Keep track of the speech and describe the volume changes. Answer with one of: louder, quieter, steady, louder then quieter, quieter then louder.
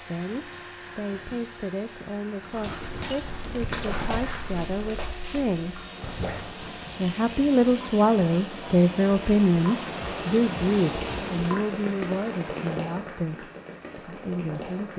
louder then quieter.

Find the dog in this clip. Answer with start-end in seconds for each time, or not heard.
2.5-6.9.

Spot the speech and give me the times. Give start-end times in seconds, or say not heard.
0.0-5.8, 7.0-14.9.